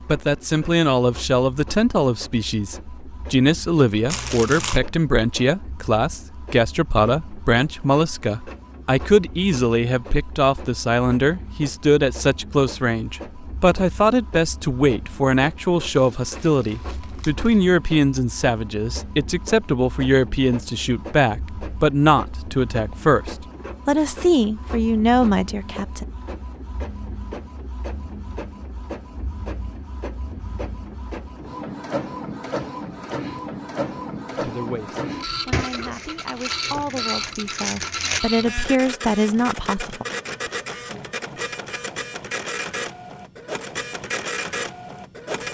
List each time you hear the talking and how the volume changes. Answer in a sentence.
The talking can be heard from 0.1 to 26.1 s, at a steady volume; and from 34.4 to 40.0 s, getting louder.